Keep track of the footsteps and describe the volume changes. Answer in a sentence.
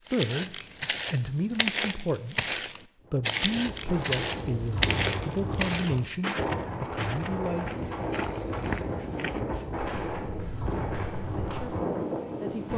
The loudness of the footsteps goes down.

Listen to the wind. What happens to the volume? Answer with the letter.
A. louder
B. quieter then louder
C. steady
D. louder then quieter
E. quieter
C.